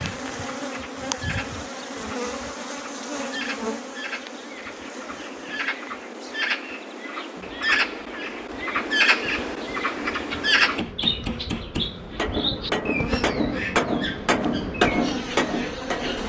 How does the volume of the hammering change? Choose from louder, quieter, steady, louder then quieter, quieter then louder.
louder.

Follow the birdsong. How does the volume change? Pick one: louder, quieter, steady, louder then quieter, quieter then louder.
louder then quieter.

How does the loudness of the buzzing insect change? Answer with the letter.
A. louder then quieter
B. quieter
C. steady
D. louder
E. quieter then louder
E.